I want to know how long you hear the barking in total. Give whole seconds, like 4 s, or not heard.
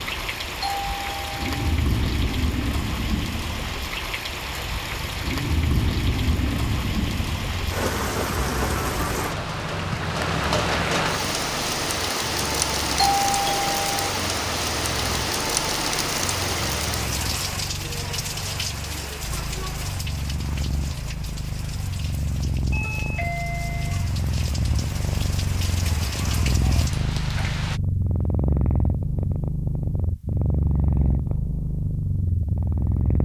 not heard.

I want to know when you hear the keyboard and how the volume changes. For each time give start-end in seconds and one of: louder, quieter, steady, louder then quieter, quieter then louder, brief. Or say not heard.
not heard.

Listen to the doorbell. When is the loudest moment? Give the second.
13 s.